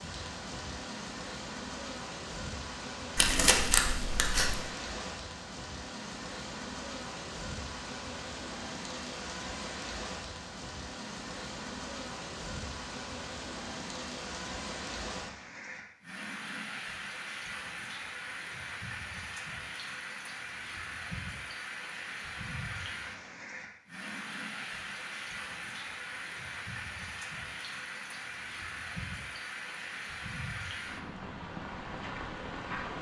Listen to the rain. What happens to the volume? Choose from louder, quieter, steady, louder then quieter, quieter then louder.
steady.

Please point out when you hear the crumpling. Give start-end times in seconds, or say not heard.
3.1-4.6.